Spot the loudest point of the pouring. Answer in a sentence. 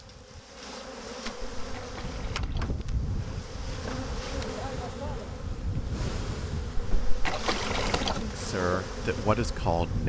The loudest moment of the pouring is at 7 seconds.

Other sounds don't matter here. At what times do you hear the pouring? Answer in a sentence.
You can hear the pouring from 1.2 to 2.7 s and from 6.8 to 8.2 s.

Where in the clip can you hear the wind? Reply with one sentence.
You can hear the wind from 1.4 to 10.0 s.